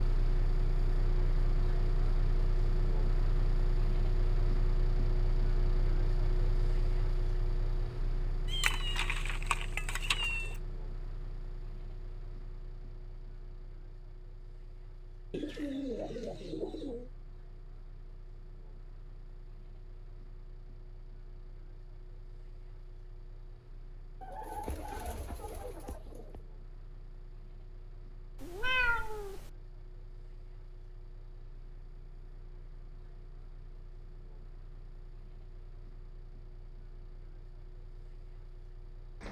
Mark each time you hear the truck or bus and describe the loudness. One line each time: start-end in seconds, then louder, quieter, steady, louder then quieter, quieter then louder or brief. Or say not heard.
0.0-39.2 quieter.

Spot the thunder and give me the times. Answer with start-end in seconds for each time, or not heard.
not heard.